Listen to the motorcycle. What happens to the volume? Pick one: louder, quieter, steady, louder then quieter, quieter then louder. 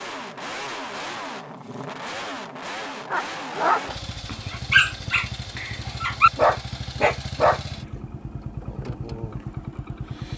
steady.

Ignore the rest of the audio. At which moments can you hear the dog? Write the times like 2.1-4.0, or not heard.
3.1-7.6.